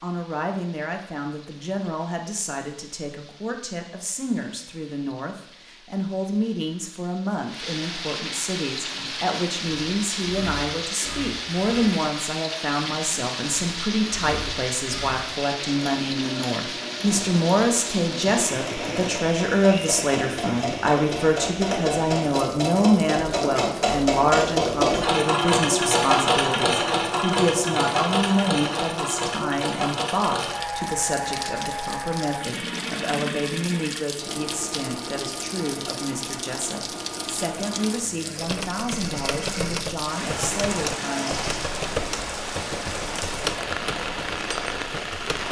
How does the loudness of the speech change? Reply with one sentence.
The loudness of the speech goes up, then down.